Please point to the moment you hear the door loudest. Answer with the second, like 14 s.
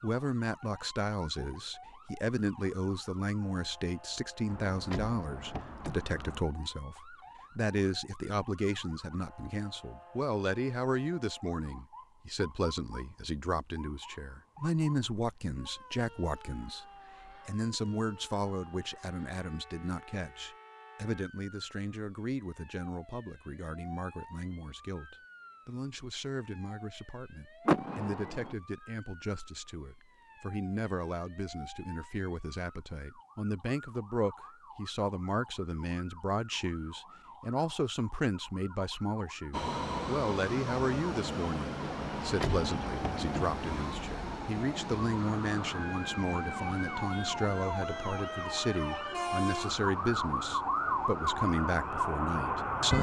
28 s.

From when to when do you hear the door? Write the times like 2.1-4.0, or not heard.
4.5-6.4, 27.6-28.6, 42.0-43.9.